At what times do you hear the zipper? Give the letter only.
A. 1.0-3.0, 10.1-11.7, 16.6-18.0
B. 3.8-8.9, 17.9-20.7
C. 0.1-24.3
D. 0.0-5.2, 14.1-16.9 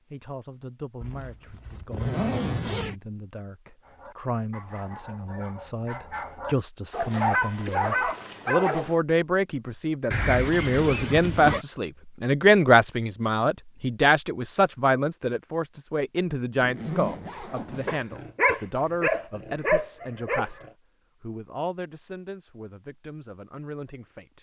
A.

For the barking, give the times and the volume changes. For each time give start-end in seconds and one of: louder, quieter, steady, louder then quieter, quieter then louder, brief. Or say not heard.
3.8-8.9 louder
17.9-20.7 brief.